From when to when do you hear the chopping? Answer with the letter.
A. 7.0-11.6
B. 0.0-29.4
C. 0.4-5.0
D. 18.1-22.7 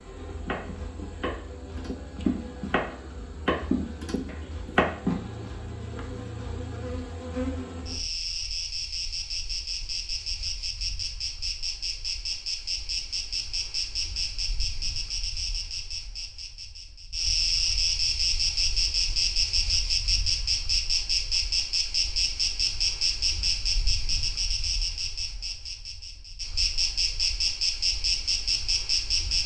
C.